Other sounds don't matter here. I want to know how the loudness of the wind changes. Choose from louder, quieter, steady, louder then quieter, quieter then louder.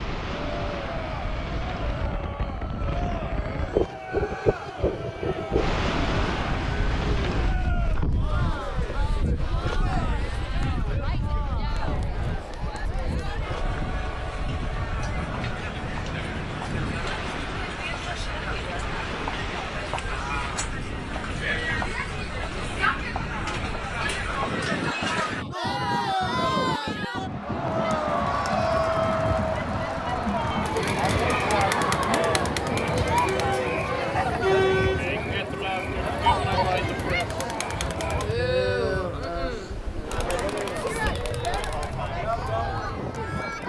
quieter.